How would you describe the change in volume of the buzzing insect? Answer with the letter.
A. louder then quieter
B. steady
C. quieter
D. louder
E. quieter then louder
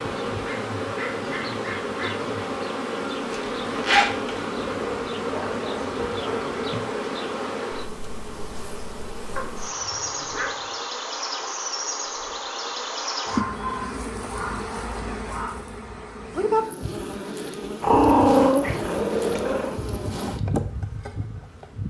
B.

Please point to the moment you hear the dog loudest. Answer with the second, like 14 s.
18 s.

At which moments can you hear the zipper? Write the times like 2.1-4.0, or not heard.
3.3-4.4.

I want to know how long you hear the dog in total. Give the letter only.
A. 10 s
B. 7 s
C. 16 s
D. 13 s
A.